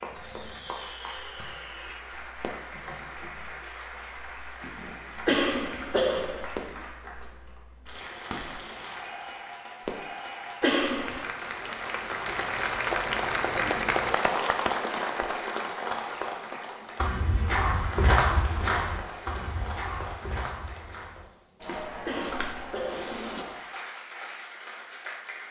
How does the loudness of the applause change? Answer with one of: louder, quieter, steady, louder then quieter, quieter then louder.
louder then quieter.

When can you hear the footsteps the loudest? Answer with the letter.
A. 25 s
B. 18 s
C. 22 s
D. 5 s
B.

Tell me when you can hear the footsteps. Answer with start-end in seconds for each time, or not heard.
16.9-23.4.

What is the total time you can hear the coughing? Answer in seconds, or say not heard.
3 s.